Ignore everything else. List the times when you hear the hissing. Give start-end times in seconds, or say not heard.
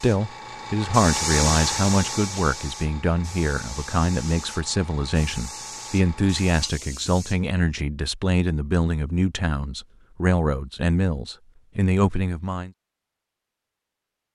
0.0-7.5.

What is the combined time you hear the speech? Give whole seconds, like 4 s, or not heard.
13 s.